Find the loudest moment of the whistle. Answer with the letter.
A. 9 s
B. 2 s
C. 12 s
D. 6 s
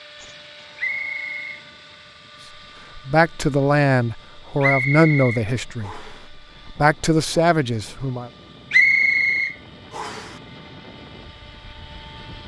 A.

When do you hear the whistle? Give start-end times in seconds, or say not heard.
0.8-1.6, 4.6-6.2, 8.7-10.3.